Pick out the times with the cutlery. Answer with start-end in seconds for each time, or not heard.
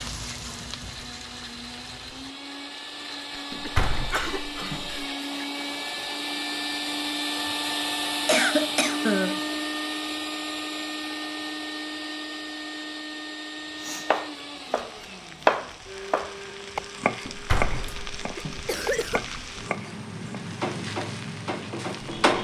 not heard.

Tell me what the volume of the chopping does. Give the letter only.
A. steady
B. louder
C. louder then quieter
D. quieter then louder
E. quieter
C.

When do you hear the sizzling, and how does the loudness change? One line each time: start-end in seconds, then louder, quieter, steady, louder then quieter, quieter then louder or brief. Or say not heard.
0.0-2.4 brief
14.7-22.4 louder.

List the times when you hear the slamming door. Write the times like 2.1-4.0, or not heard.
3.5-5.0, 17.2-18.6.